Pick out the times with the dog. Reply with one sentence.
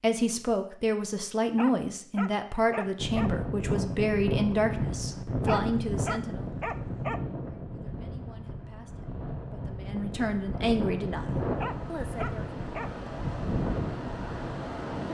You can hear the dog from 1.6 to 3.4 s, from 5.5 to 7.2 s and from 11.6 to 12.9 s.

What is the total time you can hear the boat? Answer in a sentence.
You can't hear the boat here.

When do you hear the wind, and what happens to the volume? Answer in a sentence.
You can hear the wind from 3.0 to 15.0 s, getting quieter then louder.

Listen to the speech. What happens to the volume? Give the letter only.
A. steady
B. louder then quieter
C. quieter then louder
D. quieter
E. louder
C.